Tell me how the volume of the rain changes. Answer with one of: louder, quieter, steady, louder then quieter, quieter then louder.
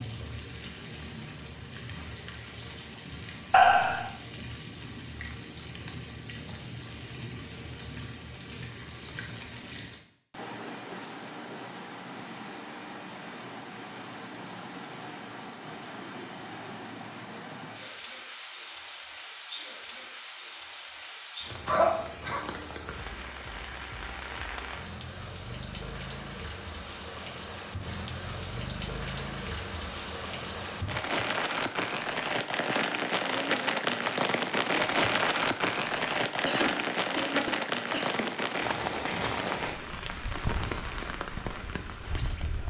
louder.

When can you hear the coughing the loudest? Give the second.
4 s.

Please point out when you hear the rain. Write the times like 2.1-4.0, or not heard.
0.0-42.6.